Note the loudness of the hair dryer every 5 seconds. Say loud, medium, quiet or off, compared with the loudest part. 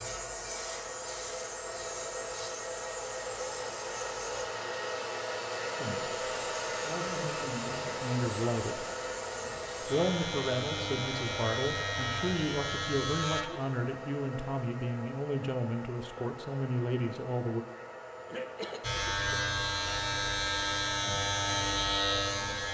loud, loud, medium, medium, medium.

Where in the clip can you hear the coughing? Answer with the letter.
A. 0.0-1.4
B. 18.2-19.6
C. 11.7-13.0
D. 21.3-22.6
B.